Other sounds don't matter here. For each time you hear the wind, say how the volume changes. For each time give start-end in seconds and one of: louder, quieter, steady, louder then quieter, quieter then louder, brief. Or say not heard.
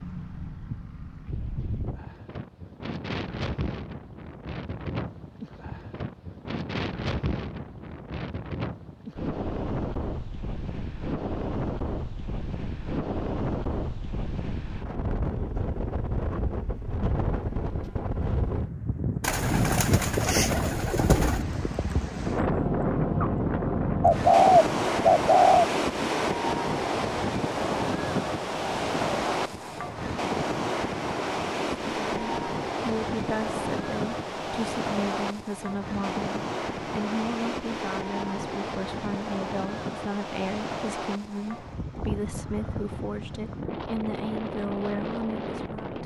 0.0-46.0 louder then quieter.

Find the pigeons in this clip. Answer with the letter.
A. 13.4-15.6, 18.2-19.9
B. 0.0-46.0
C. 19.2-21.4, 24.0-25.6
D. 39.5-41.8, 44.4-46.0
C.